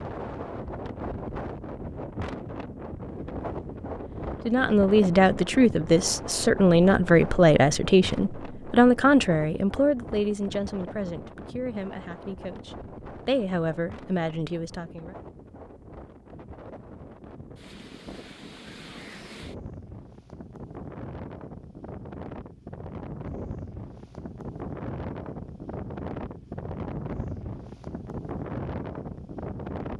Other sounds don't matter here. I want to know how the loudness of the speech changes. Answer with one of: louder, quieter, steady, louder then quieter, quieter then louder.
quieter then louder.